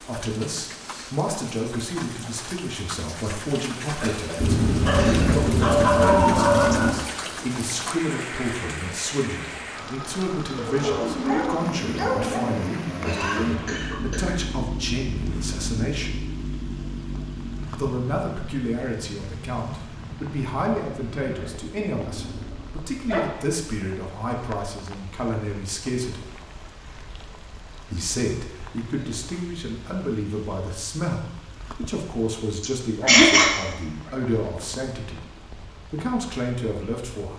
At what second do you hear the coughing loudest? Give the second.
33 s.